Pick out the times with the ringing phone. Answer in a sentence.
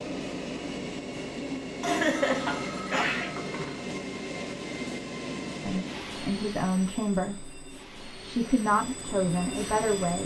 The ringing phone can be heard from 2.1 to 3.9 s.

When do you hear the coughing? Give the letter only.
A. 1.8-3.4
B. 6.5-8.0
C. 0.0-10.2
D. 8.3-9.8
A.